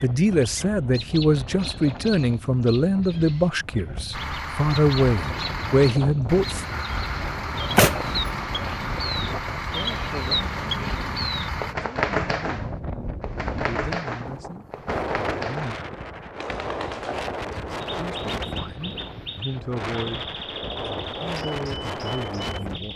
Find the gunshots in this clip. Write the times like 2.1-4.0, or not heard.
7.5-8.4.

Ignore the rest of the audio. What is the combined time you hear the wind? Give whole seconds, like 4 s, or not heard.
23 s.